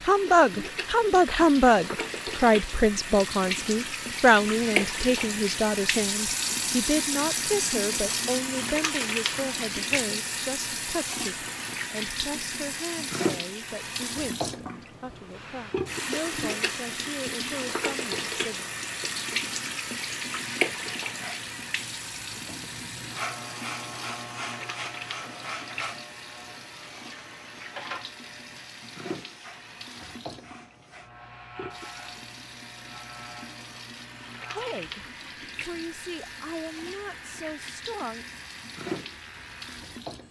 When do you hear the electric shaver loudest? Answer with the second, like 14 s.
24 s.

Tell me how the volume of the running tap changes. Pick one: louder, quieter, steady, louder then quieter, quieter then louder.
quieter.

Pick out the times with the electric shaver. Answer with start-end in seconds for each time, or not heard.
21.1-40.2.